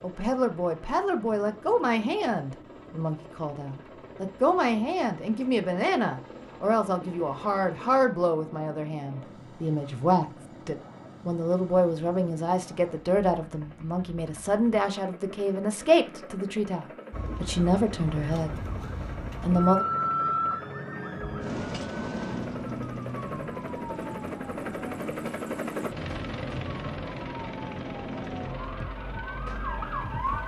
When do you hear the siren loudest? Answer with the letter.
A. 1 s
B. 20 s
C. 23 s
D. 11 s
B.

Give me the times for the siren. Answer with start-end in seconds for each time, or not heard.
17.1-30.4.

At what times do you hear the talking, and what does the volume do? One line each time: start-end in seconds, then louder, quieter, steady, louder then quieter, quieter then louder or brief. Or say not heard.
0.0-18.7 steady
19.4-19.9 brief.